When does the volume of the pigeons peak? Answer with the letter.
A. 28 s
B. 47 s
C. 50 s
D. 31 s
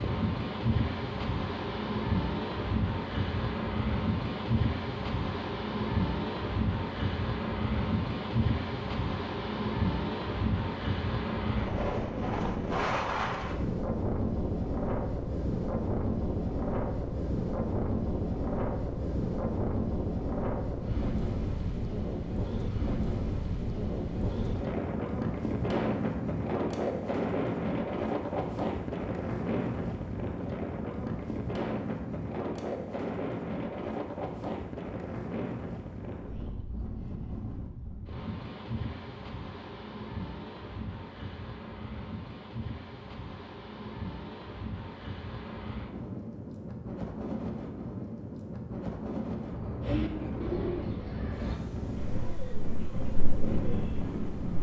C.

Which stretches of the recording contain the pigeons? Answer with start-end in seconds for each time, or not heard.
49.8-54.5.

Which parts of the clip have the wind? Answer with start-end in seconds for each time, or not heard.
0.0-54.5.